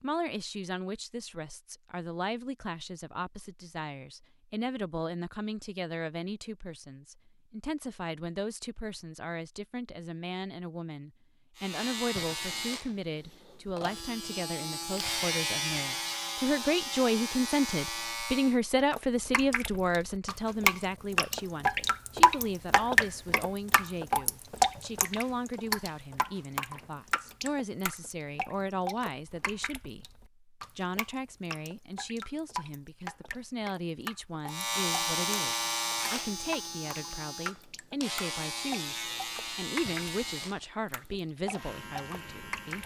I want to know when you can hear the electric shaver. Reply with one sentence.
The electric shaver can be heard from 11.6 to 18.6 s and from 34.5 to 42.8 s.